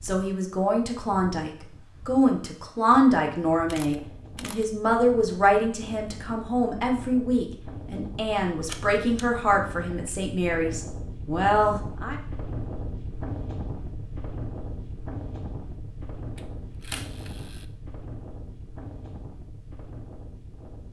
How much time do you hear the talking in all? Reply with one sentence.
The talking can be heard for 12 seconds in total.